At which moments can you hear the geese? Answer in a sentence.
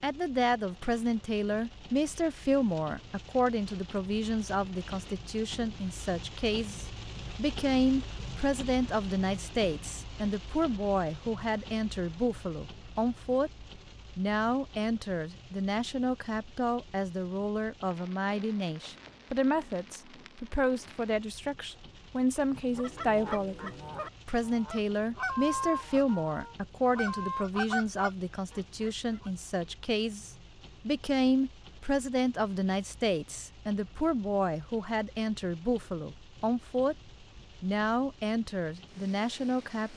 The geese can be heard from 22.6 to 29.3 s.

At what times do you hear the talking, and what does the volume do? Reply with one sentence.
The talking can be heard from 0.0 to 13.5 s, at a steady volume; from 14.2 to 37.0 s, at a steady volume; and briefly from 37.6 to 39.9 s.